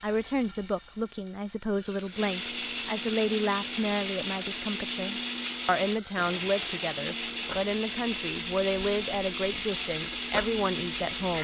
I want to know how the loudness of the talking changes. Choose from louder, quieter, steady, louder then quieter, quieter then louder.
steady.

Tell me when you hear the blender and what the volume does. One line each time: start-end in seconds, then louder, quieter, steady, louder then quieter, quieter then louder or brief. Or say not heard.
2.1-11.3 steady.